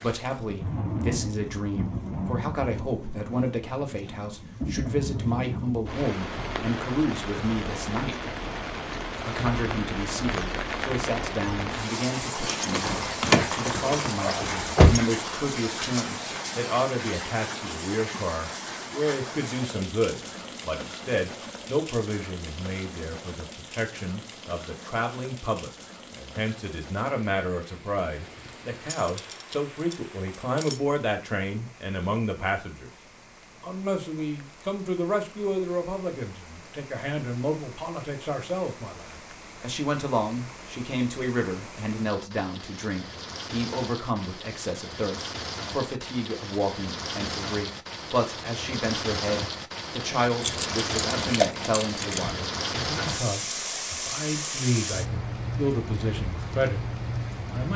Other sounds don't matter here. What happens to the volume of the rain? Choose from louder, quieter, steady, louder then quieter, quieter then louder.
quieter then louder.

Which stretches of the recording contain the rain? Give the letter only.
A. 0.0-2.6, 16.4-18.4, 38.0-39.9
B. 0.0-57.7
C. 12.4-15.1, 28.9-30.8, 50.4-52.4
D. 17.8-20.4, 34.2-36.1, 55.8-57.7
B.